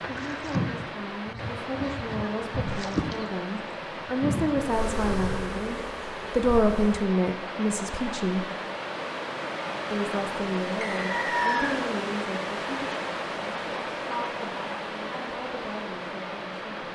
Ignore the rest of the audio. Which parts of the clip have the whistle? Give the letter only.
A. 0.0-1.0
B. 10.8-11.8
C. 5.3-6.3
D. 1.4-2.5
B.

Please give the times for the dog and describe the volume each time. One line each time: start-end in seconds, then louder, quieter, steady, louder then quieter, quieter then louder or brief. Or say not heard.
not heard.